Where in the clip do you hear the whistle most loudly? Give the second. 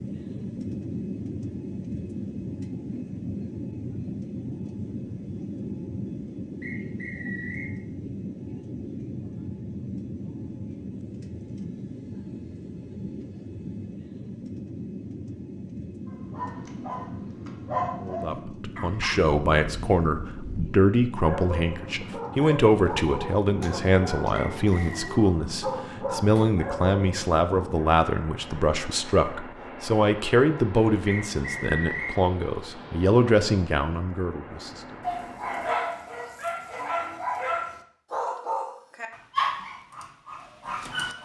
32 s.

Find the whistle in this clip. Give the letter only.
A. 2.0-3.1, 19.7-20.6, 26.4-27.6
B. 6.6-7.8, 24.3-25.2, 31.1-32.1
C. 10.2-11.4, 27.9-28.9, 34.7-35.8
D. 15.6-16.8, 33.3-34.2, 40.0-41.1
B.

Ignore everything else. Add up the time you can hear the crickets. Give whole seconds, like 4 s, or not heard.
not heard.